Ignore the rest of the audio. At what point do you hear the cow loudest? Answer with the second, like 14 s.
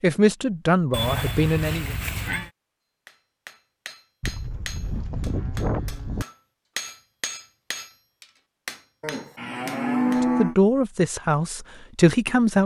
10 s.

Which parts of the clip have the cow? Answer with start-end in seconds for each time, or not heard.
0.9-2.5, 4.2-6.2, 9.0-10.6.